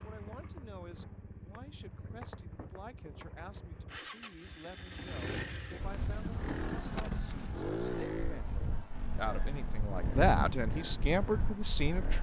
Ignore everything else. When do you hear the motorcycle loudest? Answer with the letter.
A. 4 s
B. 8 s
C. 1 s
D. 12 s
B.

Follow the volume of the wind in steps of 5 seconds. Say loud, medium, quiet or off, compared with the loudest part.
off, medium, loud.